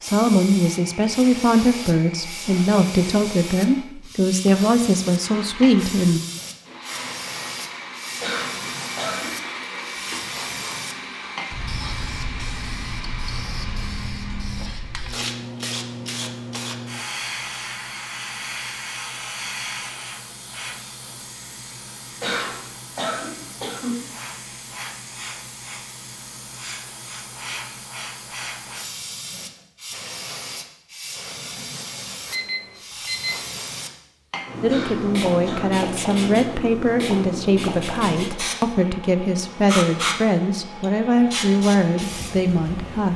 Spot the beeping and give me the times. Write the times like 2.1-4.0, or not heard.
32.3-33.5.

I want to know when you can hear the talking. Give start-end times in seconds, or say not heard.
0.0-6.2, 34.6-43.1.